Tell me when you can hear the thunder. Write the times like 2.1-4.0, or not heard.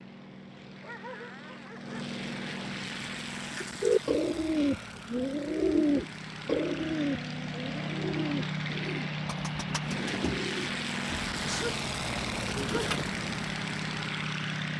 not heard.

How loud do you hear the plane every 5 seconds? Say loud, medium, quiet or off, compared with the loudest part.
medium, loud, loud.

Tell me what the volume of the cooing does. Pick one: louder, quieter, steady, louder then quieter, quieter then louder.
quieter.